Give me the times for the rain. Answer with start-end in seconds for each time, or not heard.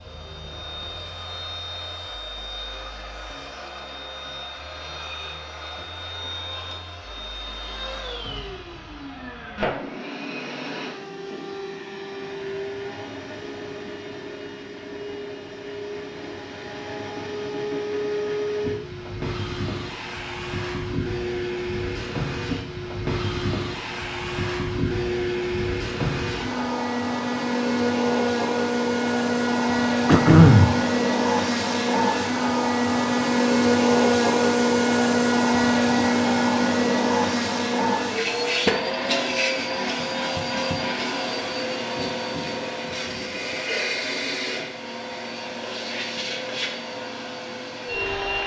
not heard.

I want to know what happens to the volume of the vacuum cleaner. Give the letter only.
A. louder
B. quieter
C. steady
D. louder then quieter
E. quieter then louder
D.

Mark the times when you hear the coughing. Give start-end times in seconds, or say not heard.
30.1-30.8.